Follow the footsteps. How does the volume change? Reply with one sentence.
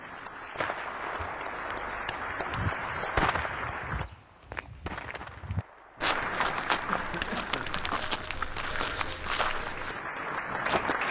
The loudness of the footsteps goes up.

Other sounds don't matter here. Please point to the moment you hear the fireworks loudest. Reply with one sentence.
The loudest moment of the fireworks is at 3 seconds.